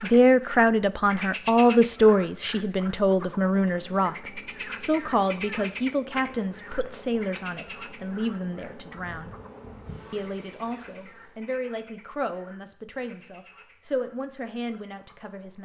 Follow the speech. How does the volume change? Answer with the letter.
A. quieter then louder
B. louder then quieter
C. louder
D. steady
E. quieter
E.